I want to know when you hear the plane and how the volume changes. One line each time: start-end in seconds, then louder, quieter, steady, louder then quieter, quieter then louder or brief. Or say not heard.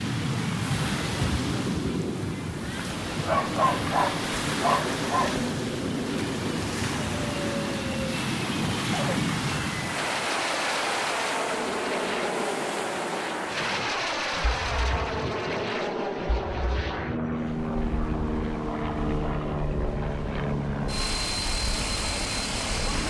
0.0-23.0 steady.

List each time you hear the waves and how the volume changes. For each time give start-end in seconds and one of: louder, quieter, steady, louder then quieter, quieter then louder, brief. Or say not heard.
0.0-23.0 quieter.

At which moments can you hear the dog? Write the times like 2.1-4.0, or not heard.
3.2-5.5.